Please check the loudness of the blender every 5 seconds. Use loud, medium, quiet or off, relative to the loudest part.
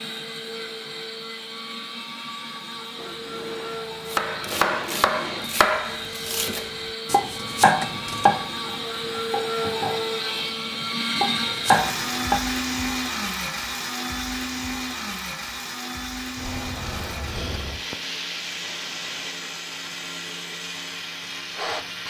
medium, loud, loud, medium, medium.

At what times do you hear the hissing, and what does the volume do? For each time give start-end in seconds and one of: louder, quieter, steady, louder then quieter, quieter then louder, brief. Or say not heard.
3.0-7.0 louder then quieter
16.4-22.0 quieter.